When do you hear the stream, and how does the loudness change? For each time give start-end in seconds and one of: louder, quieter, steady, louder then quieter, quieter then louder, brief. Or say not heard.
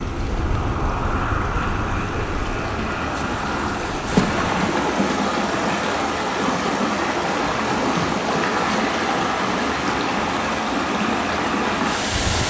0.0-12.4 louder.